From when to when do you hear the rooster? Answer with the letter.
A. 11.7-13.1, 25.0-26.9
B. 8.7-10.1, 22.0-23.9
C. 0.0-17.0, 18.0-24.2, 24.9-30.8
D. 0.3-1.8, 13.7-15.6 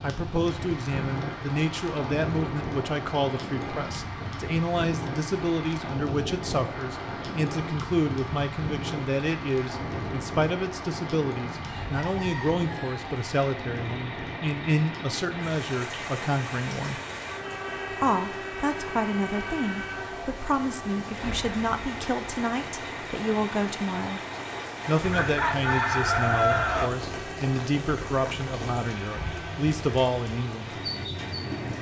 A.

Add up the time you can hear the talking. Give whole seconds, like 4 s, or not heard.
29 s.